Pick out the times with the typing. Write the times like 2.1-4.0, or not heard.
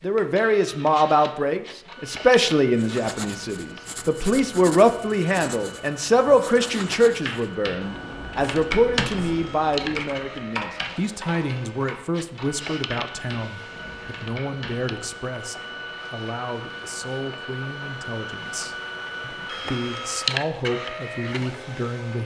7.1-14.9.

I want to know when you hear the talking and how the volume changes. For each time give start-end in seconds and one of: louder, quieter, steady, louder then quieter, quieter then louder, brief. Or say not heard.
0.0-22.2 quieter.